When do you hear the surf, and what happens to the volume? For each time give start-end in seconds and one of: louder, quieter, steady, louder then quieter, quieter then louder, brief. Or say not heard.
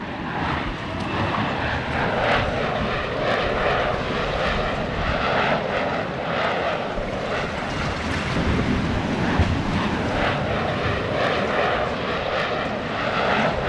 0.0-13.6 louder then quieter.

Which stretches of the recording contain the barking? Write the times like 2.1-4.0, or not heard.
not heard.